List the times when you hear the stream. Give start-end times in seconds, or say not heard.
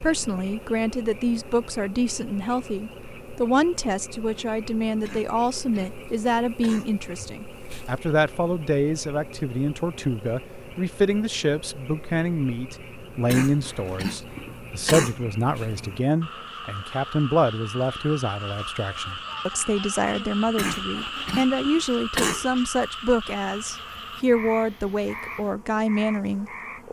not heard.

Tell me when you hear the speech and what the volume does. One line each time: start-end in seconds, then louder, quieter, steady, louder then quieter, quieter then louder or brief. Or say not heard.
0.0-26.8 steady.